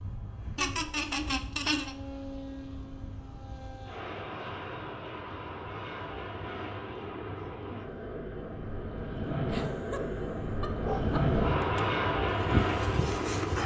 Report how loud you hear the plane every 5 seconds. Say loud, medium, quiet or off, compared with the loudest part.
quiet, medium, loud.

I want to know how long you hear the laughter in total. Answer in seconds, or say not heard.
3 s.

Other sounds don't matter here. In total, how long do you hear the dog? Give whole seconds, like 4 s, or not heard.
3 s.